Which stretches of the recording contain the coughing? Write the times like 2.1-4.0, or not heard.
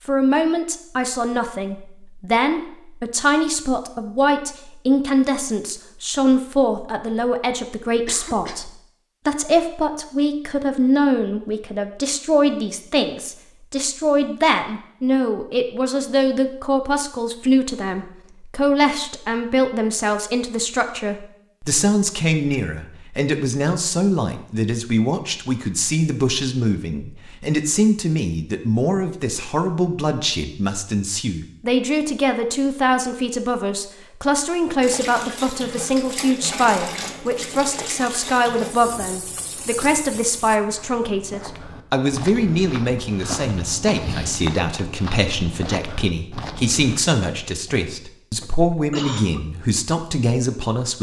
8.1-8.7, 47.6-49.4.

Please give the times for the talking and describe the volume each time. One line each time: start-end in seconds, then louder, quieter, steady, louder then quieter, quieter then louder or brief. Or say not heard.
0.1-50.9 steady.